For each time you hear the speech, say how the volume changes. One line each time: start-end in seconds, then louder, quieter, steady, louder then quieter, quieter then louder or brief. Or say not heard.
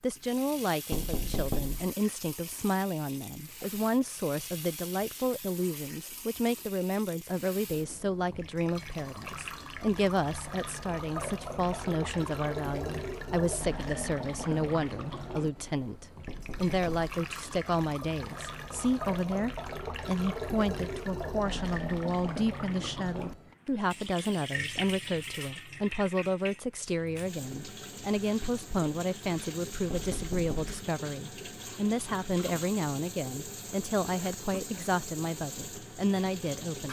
0.0-36.8 steady.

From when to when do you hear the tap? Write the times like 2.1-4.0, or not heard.
0.1-36.8.